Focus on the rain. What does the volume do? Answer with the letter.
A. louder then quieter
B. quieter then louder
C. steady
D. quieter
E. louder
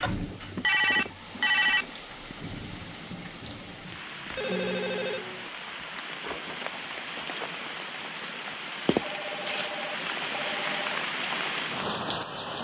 E.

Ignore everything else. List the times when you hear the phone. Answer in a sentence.
You can hear the phone from 0.0 to 1.9 s, from 4.3 to 5.5 s and from 9.0 to 11.0 s.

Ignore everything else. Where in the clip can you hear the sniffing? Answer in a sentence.
You can't hear the sniffing here.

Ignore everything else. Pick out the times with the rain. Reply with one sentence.
You can hear the rain from 0.0 to 12.5 s.